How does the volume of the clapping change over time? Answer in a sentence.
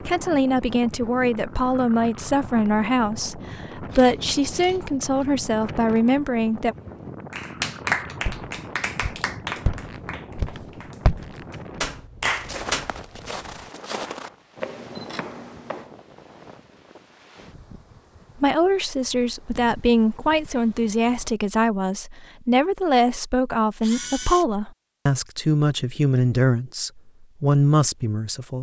The volume of the clapping goes down, then up.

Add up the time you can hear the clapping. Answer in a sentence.
The clapping can be heard for 6 seconds in total.